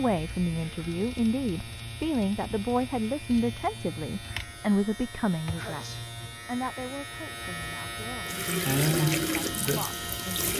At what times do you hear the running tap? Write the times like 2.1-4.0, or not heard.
8.2-10.5.